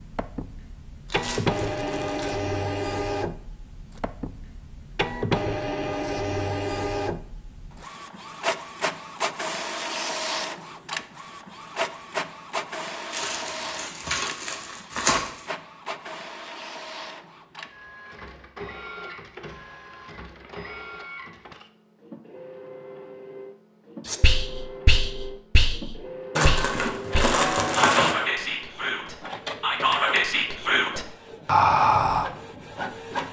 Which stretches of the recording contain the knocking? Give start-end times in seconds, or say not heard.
not heard.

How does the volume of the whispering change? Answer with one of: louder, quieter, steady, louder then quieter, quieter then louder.
louder.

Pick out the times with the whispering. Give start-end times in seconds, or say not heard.
24.1-32.2.